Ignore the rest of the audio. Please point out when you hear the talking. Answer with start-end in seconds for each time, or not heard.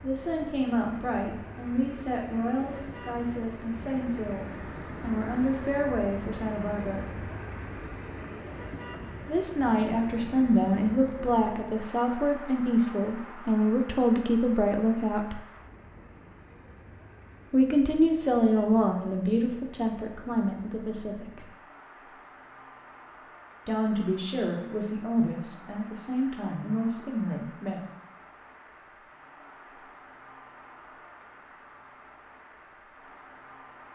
0.0-7.0, 9.2-15.3, 17.5-21.4, 23.6-27.8.